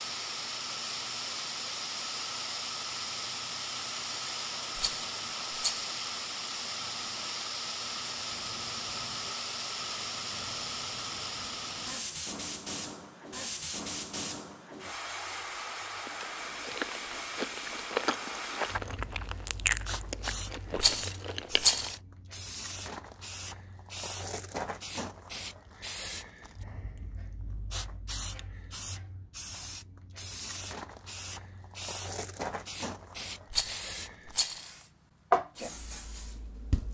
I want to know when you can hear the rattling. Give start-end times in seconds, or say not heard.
4.8-5.9, 20.8-21.9, 33.5-34.7.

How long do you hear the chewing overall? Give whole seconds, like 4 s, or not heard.
6 s.